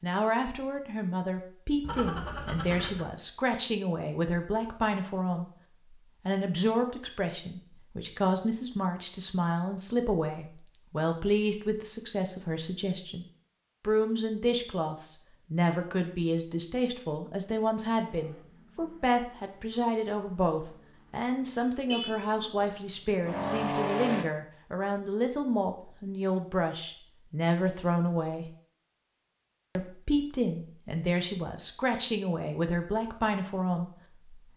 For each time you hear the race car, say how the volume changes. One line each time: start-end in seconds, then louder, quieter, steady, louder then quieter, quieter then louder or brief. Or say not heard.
18.1-24.2 louder.